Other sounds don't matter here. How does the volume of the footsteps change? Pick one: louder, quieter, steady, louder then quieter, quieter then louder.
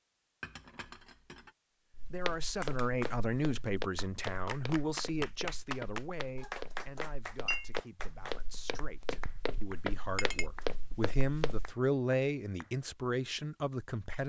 quieter then louder.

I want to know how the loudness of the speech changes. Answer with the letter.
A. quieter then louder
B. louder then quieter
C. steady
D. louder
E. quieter
A.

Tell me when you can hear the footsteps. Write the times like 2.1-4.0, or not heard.
1.9-11.8.